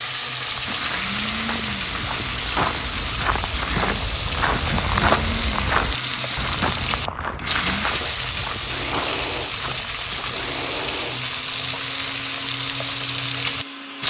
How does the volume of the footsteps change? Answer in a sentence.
The volume of the footsteps goes up, then down.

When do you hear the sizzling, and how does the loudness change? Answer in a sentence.
You can hear the sizzling from 0.0 to 14.0 s, at a steady volume.